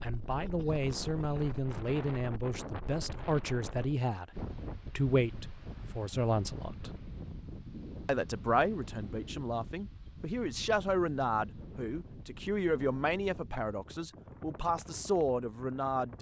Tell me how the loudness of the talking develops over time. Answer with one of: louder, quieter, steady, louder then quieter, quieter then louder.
steady.